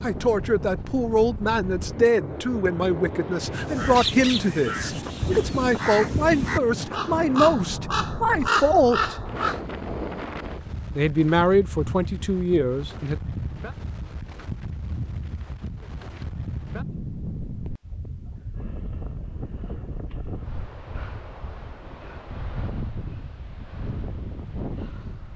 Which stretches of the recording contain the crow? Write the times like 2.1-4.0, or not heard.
3.6-9.6.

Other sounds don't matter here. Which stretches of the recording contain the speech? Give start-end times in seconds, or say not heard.
0.0-9.2, 10.9-13.2.